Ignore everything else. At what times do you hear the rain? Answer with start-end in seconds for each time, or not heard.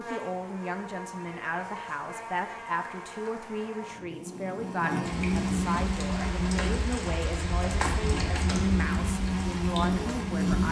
5.0-10.6.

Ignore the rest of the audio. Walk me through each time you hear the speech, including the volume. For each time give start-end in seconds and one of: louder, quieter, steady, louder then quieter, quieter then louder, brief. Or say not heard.
0.0-10.6 steady.